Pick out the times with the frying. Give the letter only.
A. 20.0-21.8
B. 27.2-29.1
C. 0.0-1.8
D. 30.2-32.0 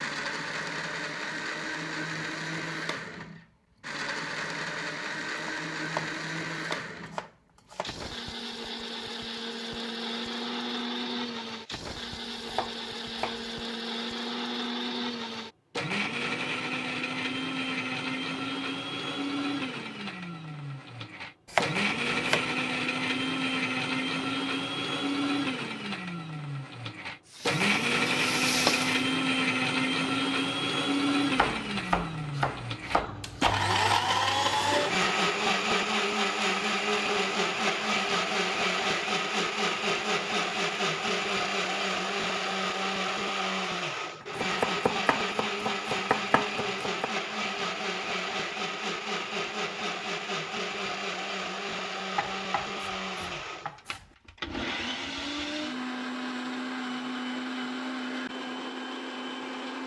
B.